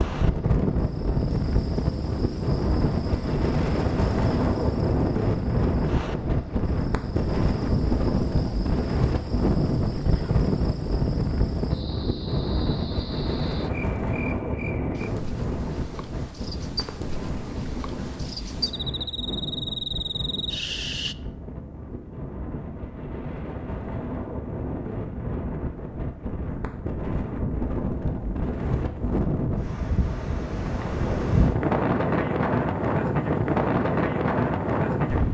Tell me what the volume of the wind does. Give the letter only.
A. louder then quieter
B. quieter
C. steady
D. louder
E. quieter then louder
E.